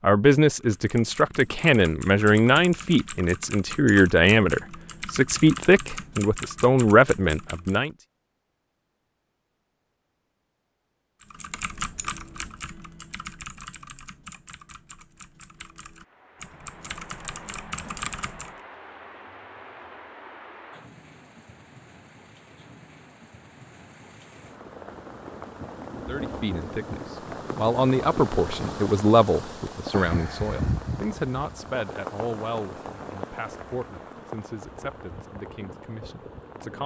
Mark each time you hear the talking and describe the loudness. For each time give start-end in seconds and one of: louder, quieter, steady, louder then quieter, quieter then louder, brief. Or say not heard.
0.0-7.9 steady
25.9-36.8 quieter.